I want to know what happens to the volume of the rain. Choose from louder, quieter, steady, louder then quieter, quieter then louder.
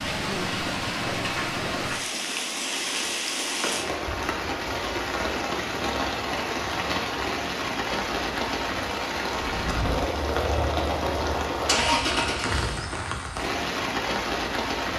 steady.